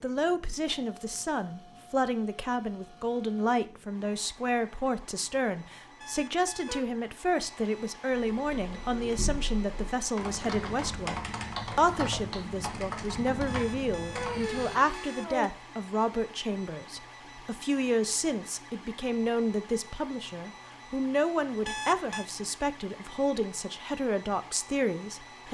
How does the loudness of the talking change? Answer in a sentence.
The volume of the talking stays about the same.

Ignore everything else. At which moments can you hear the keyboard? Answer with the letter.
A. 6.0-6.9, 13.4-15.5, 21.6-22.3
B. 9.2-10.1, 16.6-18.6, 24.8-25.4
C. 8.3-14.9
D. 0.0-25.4
C.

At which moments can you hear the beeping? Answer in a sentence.
The beeping can be heard from 6.0 to 6.9 s, from 13.4 to 15.5 s and from 21.6 to 22.3 s.